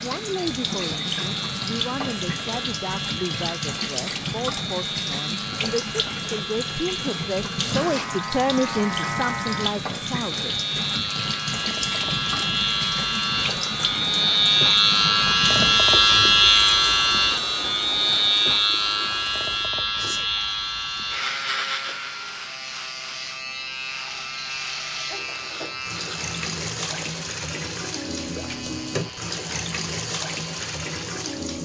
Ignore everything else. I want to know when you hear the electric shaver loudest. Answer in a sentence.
The volume of the electric shaver peaks at 16 seconds.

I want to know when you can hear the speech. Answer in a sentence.
The speech can be heard from 0.0 to 10.6 s.